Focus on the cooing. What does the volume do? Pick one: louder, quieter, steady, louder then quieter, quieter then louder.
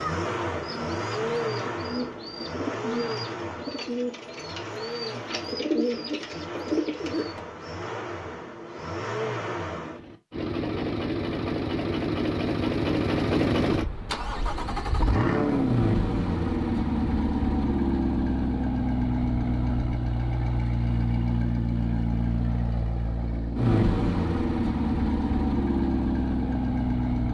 louder.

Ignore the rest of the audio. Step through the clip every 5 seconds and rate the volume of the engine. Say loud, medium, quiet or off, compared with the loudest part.
medium, medium, loud, loud, loud, loud.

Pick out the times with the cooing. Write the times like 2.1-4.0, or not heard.
0.6-7.4.